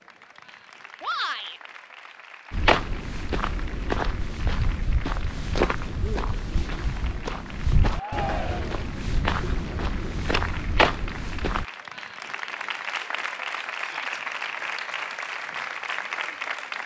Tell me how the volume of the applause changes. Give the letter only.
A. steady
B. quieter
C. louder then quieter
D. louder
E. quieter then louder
D.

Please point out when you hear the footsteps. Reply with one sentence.
You can hear the footsteps from 2.5 to 11.7 s.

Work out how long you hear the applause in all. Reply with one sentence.
The applause can be heard for 17 seconds in total.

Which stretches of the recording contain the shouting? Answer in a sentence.
You can hear the shouting from 1.0 to 1.6 s, from 7.9 to 8.8 s and from 13.8 to 14.2 s.